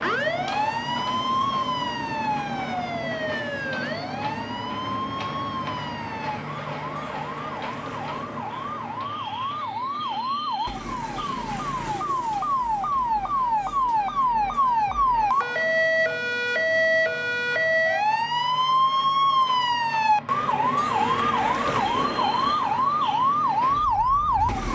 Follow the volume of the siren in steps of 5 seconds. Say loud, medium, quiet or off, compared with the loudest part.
medium, medium, loud, loud, loud.